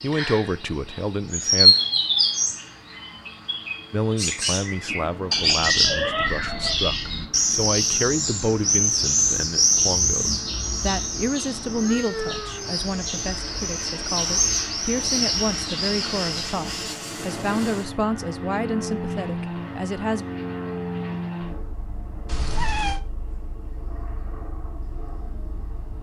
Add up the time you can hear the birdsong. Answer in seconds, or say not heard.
17 s.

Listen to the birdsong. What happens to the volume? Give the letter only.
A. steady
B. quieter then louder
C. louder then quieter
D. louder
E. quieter
E.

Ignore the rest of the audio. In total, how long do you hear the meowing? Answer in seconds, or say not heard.
4 s.